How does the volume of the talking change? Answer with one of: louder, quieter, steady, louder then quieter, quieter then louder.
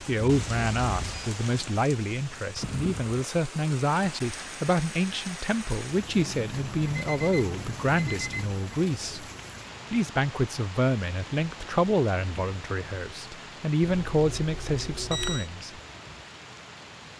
steady.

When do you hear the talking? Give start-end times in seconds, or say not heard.
0.1-9.2, 9.9-15.7.